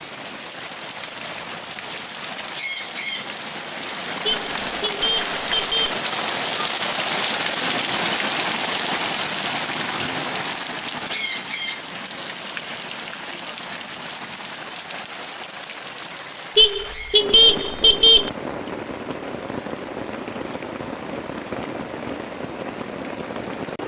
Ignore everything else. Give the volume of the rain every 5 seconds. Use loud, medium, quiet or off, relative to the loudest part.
medium, loud, medium, medium, medium.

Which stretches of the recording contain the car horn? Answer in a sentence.
The car horn can be heard from 4.2 to 6.0 s and from 16.6 to 18.3 s.